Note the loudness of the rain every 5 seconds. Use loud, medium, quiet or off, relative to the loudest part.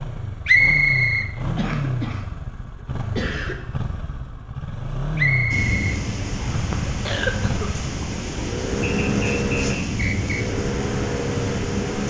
off, loud, loud.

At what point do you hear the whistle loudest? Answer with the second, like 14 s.
1 s.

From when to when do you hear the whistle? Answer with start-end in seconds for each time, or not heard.
0.5-1.3, 5.2-6.5, 8.8-10.4.